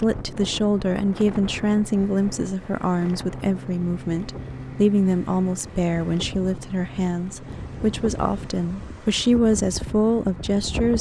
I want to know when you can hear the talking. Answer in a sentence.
The talking can be heard from 0.0 to 10.9 s.